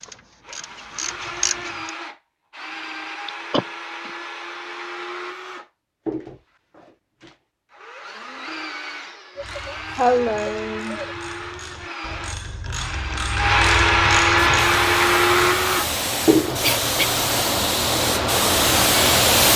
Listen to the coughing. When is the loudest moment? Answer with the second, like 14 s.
10 s.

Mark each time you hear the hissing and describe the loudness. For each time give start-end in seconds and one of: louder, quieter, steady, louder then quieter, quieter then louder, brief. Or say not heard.
14.5-19.5 louder.